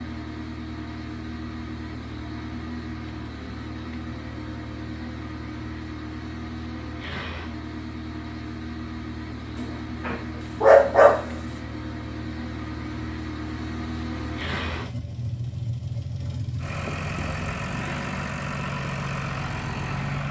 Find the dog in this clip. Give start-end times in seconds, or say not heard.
9.6-11.3.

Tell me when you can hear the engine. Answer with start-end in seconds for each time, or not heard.
0.0-20.2.